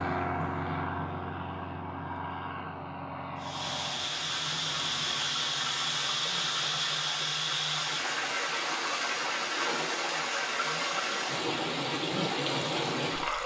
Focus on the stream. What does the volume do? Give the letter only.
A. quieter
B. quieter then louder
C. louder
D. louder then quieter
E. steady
E.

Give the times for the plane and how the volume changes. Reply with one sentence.
The plane can be heard from 0.0 to 5.2 s, getting quieter.